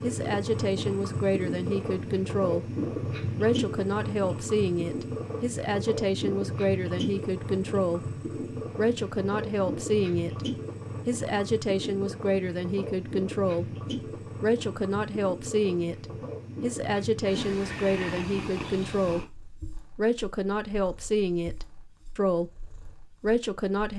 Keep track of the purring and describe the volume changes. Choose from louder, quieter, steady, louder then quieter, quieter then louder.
quieter.